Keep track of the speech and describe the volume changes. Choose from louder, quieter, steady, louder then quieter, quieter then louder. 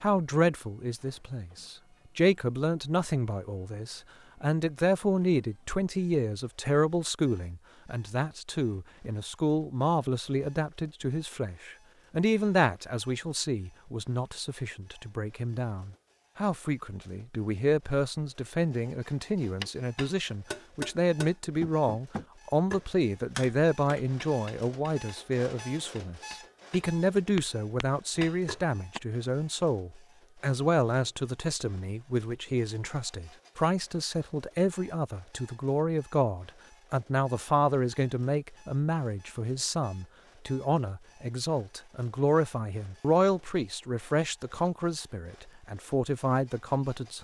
steady.